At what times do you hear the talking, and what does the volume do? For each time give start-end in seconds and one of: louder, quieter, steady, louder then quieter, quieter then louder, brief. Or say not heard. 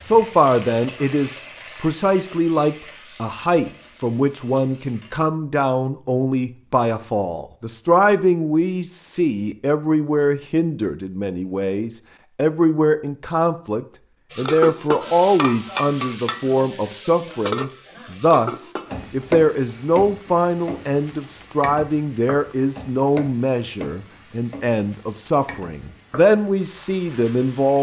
0.1-27.7 steady.